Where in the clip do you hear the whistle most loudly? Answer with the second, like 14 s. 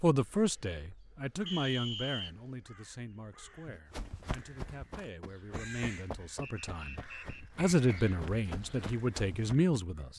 2 s.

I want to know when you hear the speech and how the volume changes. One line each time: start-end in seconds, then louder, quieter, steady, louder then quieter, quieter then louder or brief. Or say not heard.
0.0-10.1 quieter then louder.